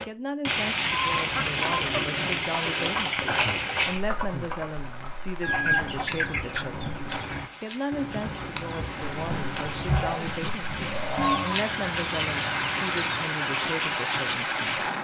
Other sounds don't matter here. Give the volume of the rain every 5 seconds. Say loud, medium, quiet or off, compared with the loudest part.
loud, quiet, loud.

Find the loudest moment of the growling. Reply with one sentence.
The loudest moment of the growling is at 10 seconds.